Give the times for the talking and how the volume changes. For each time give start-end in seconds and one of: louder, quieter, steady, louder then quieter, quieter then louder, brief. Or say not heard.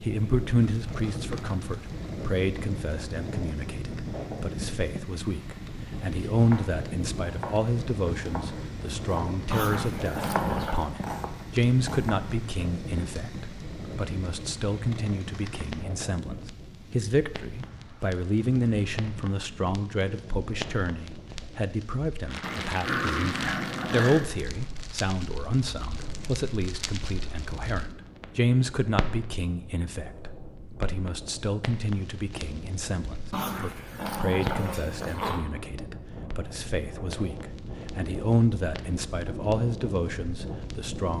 0.0-41.1 steady.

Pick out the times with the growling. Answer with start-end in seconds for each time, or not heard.
9.5-10.9, 22.4-24.3, 33.3-35.5.